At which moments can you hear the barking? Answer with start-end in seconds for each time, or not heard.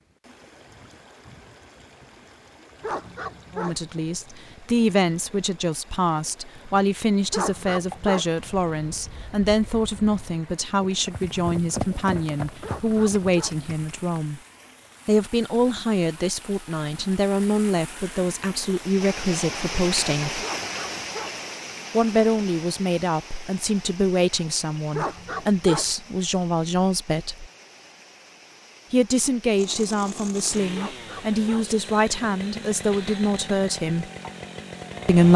2.8-3.8, 7.3-8.3, 12.6-13.6, 20.4-21.4, 24.9-25.9, 30.7-31.8.